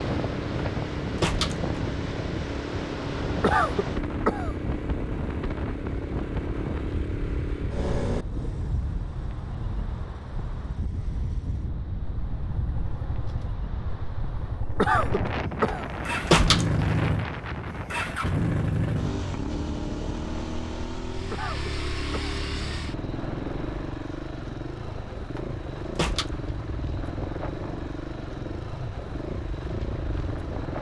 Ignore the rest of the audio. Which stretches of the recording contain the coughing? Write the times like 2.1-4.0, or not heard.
3.4-4.5, 14.8-15.8, 21.3-22.4.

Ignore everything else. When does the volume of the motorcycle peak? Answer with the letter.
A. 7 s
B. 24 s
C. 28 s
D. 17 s
D.